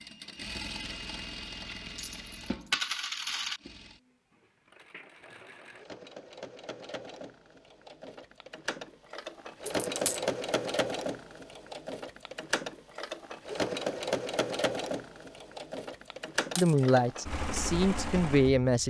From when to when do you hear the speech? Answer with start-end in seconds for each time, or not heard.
16.6-18.8.